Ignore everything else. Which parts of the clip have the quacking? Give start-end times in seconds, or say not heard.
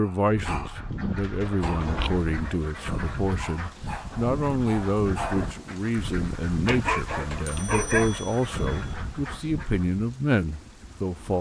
0.2-10.0.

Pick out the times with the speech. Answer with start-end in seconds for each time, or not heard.
0.0-11.3.